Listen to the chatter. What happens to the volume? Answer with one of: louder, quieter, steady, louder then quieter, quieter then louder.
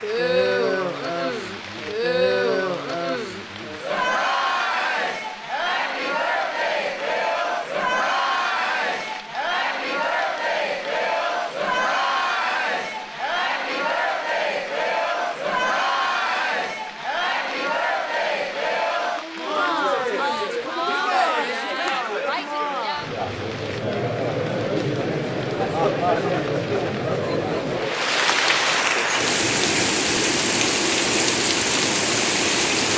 steady.